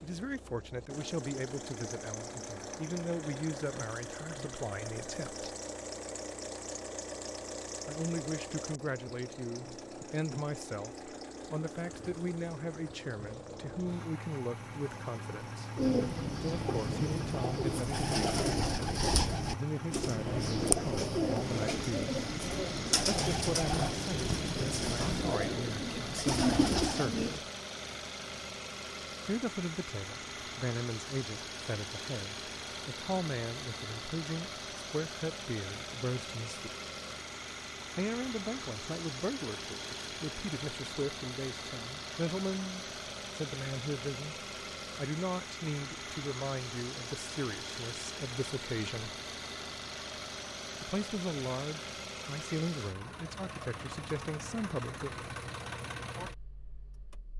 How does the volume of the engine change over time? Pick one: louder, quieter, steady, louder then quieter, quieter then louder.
steady.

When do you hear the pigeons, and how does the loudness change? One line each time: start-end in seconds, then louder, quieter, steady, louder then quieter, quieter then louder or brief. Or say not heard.
15.8-27.4 steady.